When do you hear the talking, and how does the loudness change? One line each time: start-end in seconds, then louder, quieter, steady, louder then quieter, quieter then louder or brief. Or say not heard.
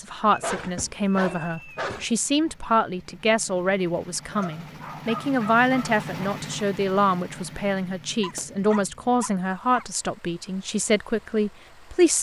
0.0-12.1 steady.